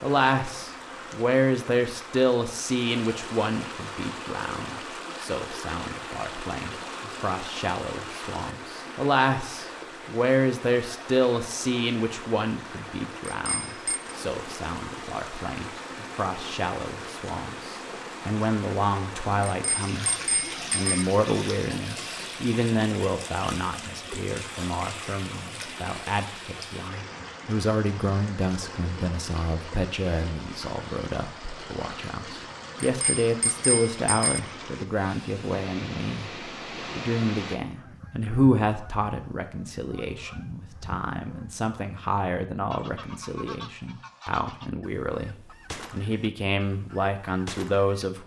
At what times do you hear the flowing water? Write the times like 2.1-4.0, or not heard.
0.0-37.6.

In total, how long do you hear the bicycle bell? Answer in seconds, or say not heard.
4 s.